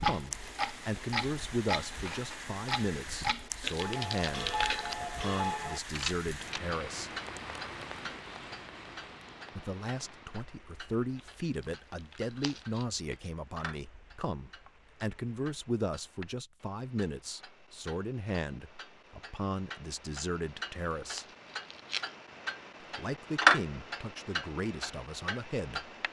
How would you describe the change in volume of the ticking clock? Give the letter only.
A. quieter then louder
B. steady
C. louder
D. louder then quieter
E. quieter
A.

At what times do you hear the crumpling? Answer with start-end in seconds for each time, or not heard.
3.6-5.0, 11.2-12.8, 21.1-22.1.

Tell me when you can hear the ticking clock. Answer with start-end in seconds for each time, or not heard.
0.0-26.0.